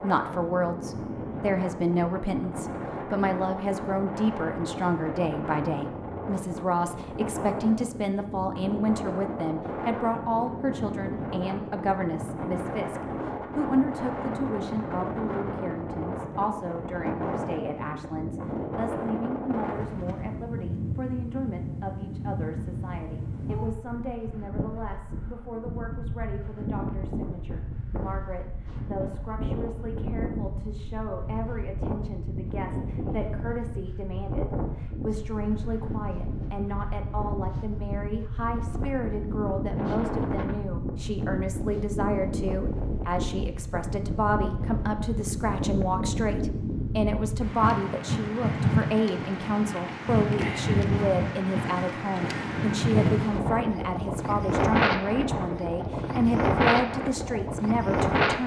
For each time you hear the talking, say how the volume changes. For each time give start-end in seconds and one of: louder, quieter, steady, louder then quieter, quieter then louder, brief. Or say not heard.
0.0-58.4 quieter then louder.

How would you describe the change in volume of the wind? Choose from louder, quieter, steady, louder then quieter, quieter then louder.
louder.